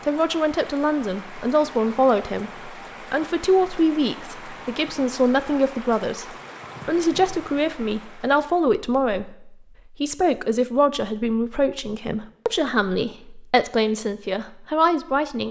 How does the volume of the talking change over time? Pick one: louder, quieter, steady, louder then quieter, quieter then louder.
steady.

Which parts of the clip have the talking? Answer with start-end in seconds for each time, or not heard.
0.0-15.4.